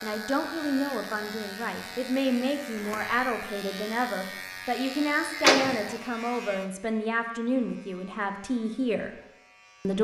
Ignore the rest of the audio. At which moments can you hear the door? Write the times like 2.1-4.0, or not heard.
2.7-3.4, 5.3-6.0.